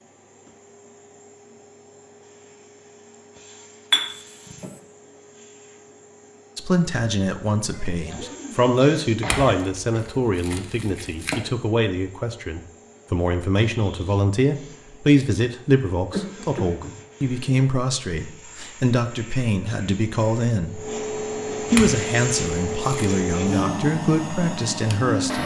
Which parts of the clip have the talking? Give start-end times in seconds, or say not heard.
6.5-20.8, 21.7-25.4.